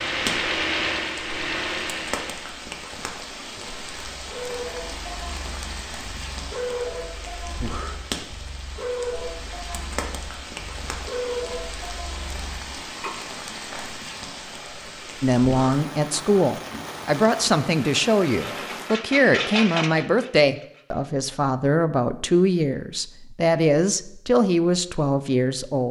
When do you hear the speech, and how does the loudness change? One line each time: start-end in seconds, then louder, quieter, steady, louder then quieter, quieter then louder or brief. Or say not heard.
15.2-25.8 steady.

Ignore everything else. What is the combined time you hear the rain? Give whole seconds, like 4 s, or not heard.
19 s.